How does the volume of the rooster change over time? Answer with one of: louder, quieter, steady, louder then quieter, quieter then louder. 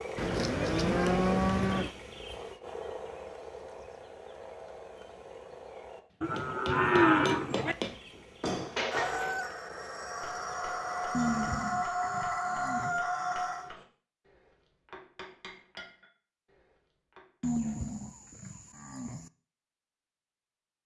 louder.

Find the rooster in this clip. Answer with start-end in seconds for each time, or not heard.
8.9-13.7.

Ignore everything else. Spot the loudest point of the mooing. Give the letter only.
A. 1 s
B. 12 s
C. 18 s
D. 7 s
D.